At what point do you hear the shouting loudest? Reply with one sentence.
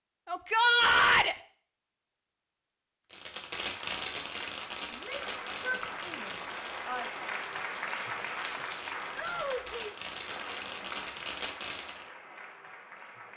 The loudest moment of the shouting is at 1 second.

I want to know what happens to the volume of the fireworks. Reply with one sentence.
The volume of the fireworks goes down, then up.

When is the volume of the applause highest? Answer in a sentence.
The loudest moment of the applause is at 8 seconds.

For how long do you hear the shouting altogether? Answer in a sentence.
The shouting can be heard for 4 seconds in total.